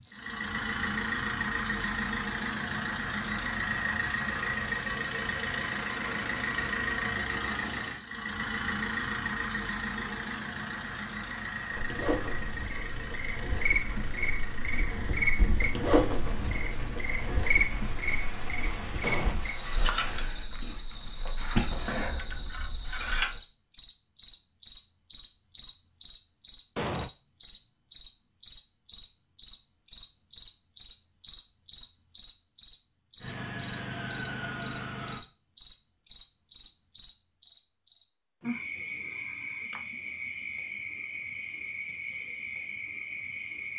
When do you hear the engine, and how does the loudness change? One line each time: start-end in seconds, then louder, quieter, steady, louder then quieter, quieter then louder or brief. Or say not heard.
0.0-20.2 quieter
33.2-35.2 brief.